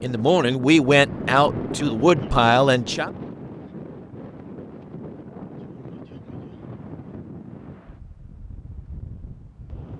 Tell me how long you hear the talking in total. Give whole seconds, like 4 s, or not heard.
3 s.